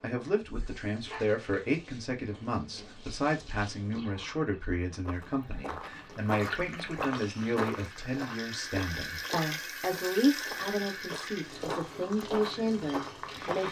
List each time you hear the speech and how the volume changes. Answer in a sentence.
You can hear the speech from 0.0 to 13.6 s, at a steady volume.